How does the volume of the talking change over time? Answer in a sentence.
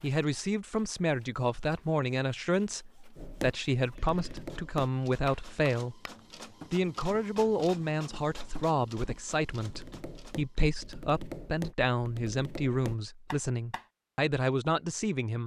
The volume of the talking stays about the same.